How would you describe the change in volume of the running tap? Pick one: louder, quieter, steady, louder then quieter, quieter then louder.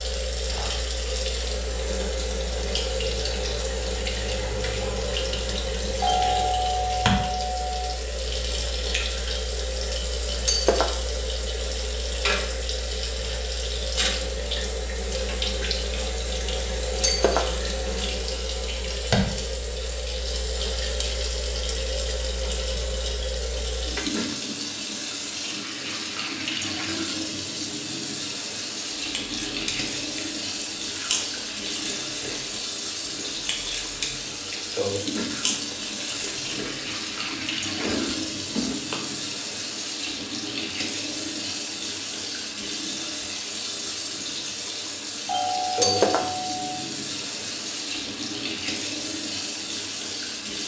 steady.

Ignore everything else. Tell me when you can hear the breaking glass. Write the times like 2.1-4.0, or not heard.
10.4-11.1, 17.0-17.6, 45.8-46.4.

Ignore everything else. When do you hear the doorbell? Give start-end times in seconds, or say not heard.
6.0-8.0, 45.2-46.9.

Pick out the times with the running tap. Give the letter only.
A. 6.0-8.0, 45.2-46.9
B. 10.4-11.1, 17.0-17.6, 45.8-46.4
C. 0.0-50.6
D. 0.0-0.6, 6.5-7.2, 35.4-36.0
C.